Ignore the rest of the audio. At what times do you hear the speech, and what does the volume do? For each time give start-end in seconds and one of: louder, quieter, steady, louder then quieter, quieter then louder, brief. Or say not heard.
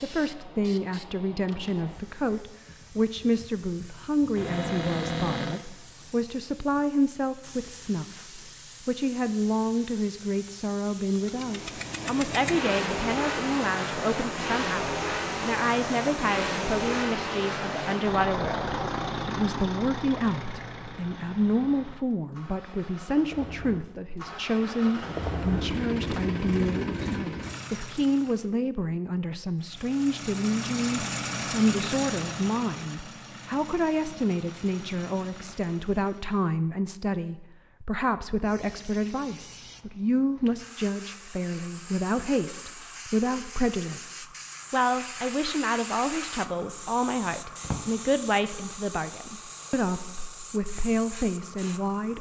0.0-52.1 steady.